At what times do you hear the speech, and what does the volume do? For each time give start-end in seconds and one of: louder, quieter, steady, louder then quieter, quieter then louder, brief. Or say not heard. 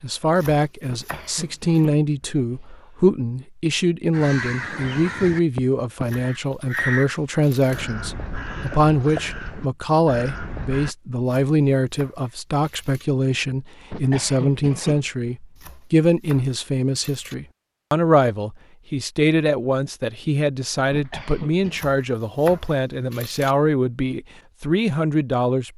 0.0-25.7 steady.